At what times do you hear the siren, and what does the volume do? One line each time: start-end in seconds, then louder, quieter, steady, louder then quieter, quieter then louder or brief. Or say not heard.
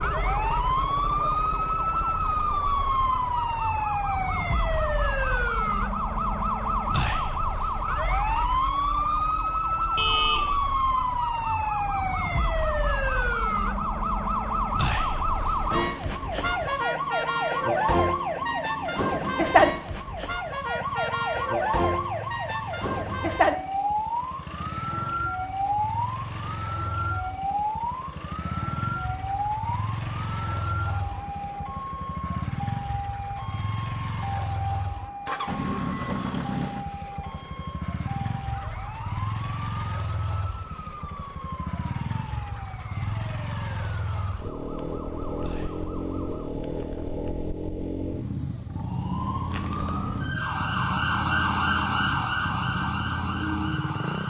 0.0-47.1 quieter
48.7-54.2 louder then quieter.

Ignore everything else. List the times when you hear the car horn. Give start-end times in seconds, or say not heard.
9.9-10.6.